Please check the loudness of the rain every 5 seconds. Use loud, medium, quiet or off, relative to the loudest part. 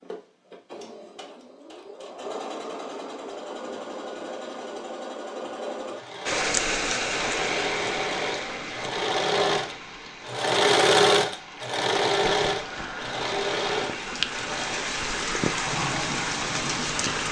off, loud, medium, loud.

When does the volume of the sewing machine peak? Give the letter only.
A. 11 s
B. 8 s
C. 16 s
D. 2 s
A.